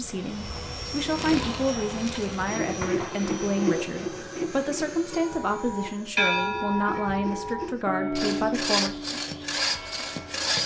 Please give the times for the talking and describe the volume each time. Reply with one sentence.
You can hear the talking from 0.0 to 8.9 s, at a steady volume.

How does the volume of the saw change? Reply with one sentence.
The loudness of the saw goes down, then up.